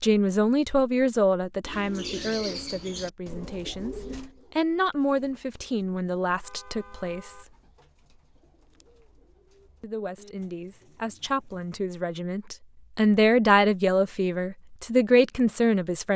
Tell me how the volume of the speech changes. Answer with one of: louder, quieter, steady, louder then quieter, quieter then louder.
quieter then louder.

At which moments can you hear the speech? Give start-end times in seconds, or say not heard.
0.0-7.5, 9.8-16.1.